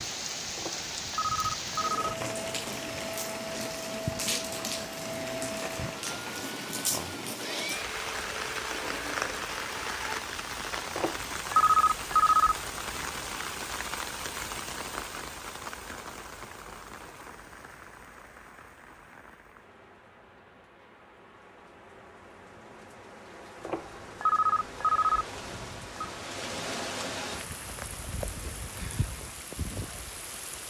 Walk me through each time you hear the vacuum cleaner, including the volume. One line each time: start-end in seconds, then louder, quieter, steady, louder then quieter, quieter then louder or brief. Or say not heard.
1.7-10.2 steady.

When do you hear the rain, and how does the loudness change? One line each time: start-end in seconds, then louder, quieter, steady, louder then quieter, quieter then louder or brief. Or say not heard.
0.0-30.6 quieter then louder.